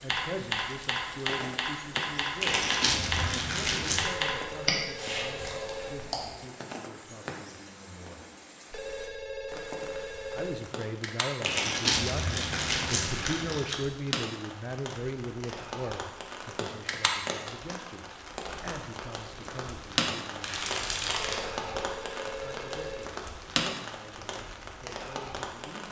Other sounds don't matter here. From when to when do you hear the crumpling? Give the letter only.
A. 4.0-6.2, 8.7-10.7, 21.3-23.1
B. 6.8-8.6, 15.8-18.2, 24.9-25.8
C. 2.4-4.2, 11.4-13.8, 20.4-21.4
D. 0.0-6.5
C.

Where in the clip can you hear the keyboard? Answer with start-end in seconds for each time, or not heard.
0.0-6.5.